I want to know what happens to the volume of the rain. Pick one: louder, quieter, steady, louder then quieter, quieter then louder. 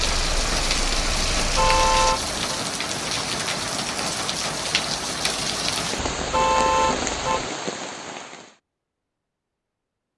steady.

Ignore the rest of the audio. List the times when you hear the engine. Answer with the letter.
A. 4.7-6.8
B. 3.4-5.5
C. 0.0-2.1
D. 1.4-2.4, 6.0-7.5
C.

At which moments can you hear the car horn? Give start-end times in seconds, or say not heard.
1.4-2.4, 6.0-7.5.